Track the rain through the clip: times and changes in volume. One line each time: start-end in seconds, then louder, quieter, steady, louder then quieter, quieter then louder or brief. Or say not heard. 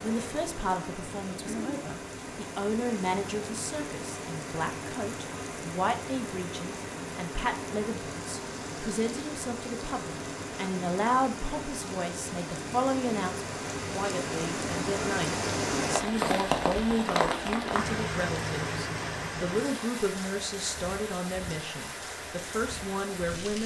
0.0-23.6 louder then quieter.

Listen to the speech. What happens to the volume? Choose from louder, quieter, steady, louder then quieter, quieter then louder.
steady.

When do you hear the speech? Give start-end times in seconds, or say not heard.
0.0-23.6.